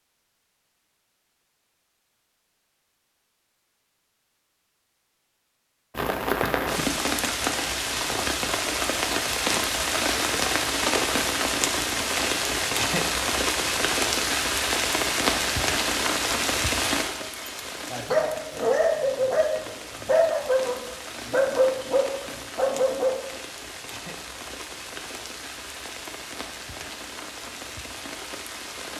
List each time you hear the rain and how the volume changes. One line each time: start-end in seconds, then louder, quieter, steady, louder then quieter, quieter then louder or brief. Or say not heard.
5.9-28.9 quieter.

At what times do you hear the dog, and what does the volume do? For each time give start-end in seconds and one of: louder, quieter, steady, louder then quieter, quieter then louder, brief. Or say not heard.
17.1-23.1 steady.